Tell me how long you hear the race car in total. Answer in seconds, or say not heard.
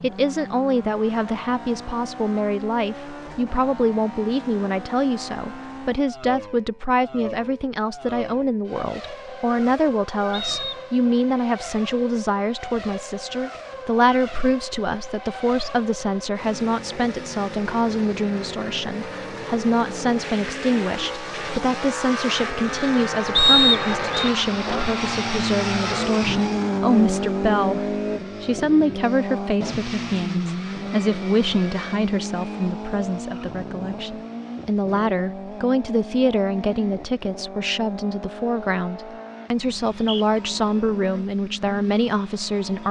43 s.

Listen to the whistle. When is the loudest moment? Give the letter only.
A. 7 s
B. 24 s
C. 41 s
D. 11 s
B.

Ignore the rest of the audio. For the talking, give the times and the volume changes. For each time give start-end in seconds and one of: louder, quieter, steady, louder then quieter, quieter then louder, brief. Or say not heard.
0.0-42.8 steady.